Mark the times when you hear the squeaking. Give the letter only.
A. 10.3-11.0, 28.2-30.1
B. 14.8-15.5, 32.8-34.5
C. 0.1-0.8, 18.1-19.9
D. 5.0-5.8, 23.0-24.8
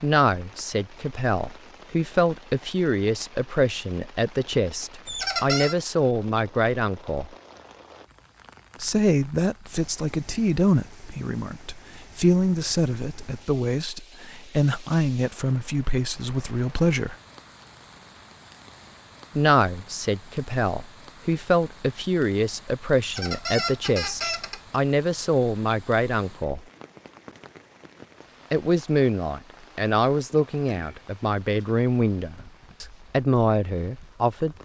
D.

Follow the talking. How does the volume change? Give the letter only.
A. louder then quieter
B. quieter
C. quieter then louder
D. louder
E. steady
E.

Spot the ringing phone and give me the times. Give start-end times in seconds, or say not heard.
not heard.